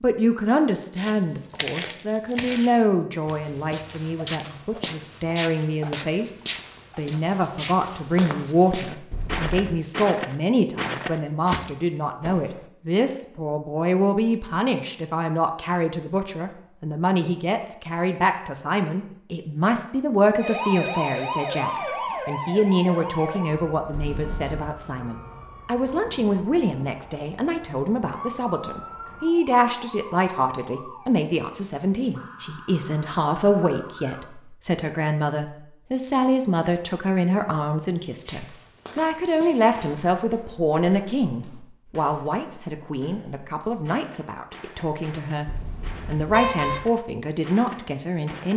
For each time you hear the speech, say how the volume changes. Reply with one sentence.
The speech can be heard from 0.0 to 48.5 s, at a steady volume.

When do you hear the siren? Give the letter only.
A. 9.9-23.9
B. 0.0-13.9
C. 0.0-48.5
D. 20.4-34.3
D.